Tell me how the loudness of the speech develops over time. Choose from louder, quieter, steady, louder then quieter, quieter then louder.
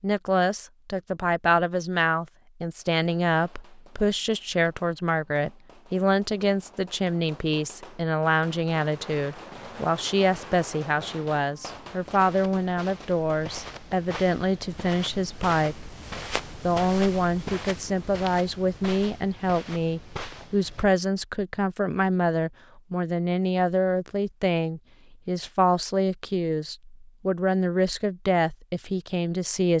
steady.